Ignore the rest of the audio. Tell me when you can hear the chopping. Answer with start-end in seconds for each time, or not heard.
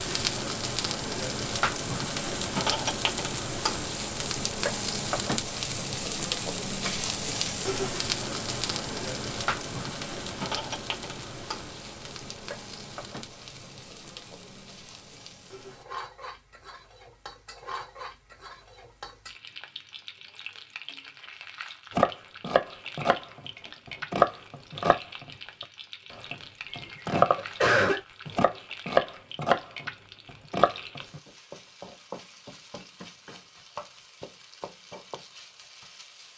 21.9-23.2, 23.9-25.2, 26.1-29.9, 30.5-31.2.